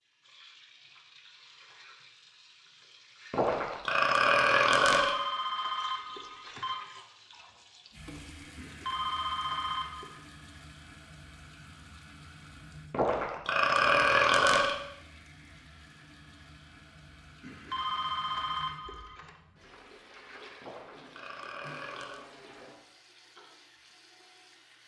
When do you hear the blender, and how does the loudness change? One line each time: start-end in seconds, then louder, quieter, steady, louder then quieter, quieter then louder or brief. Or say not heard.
not heard.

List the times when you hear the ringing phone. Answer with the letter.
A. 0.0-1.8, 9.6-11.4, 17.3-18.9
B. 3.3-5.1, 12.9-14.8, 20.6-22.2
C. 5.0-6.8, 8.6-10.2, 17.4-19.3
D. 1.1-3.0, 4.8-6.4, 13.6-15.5
C.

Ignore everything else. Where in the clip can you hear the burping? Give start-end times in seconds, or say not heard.
3.3-5.1, 12.9-14.8, 20.6-22.2.